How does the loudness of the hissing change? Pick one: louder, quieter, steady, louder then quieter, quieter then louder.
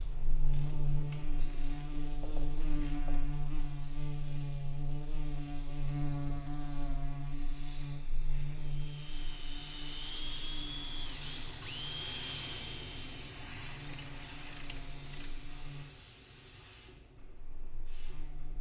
louder then quieter.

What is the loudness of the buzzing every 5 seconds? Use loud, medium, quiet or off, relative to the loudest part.
loud, loud, quiet, quiet.